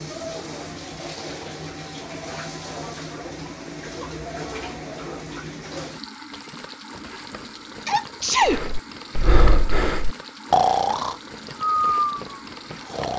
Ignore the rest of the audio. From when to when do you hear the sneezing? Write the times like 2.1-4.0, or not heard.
7.8-8.7.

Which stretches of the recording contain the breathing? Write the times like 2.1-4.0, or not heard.
8.4-13.1.